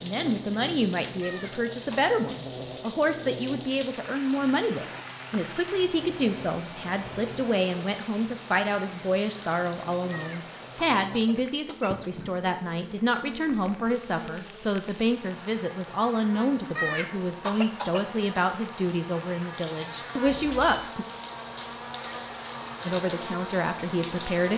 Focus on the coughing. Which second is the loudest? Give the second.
17 s.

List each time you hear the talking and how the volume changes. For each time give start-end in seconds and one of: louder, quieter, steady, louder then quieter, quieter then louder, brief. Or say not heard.
0.0-21.1 steady
22.9-24.5 brief.